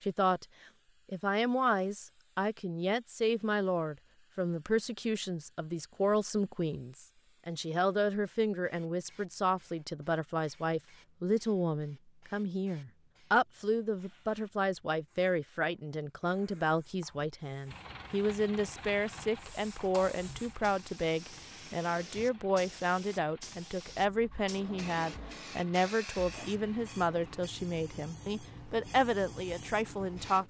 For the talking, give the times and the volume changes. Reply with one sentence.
The talking can be heard briefly from 0.0 to 0.5 s; and from 1.1 to 30.4 s, at a steady volume.